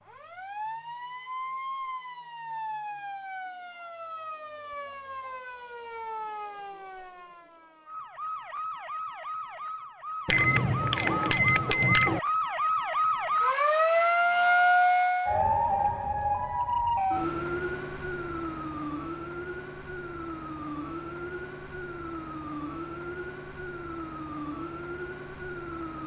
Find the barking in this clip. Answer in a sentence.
The barking can't be heard in this clip.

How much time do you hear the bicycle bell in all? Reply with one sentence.
You can hear the bicycle bell for 2 seconds altogether.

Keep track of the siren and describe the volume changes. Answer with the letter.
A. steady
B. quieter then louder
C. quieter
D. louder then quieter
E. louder
D.